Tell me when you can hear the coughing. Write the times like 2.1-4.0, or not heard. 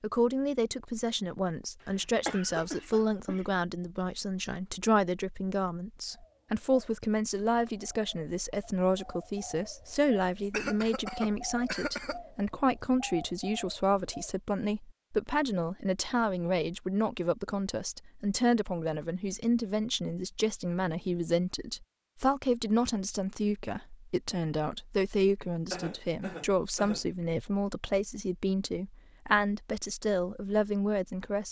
2.0-3.5, 10.5-12.2, 25.7-27.1.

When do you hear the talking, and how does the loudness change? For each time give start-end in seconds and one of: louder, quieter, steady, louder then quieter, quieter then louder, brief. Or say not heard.
0.0-31.4 steady.